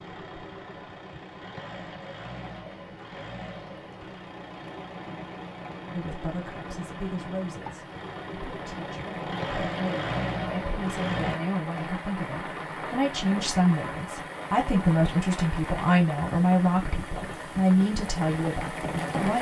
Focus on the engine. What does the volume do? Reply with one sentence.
The loudness of the engine goes up.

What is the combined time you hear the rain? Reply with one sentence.
The rain can be heard for 19 seconds in total.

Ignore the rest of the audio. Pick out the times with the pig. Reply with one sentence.
You can't hear the pig here.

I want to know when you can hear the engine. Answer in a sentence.
The engine can be heard from 0.0 to 11.4 s.